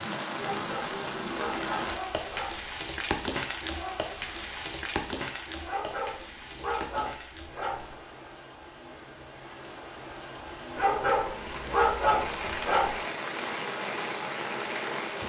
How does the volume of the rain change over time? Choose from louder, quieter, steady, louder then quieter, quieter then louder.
quieter then louder.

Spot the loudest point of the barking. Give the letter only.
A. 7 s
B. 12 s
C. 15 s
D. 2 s
B.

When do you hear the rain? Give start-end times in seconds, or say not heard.
0.0-15.2.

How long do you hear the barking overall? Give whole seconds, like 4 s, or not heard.
7 s.